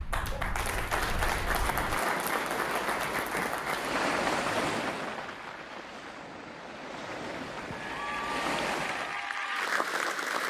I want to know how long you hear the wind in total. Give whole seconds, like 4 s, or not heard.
9 s.